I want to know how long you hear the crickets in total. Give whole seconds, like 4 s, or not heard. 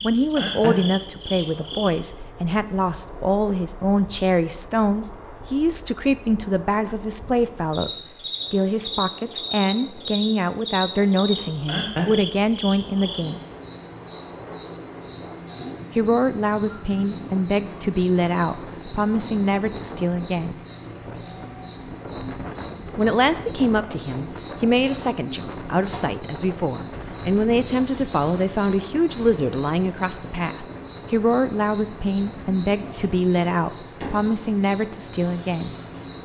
36 s.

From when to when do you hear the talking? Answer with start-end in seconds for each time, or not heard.
0.0-13.4, 15.9-20.6, 22.9-35.8.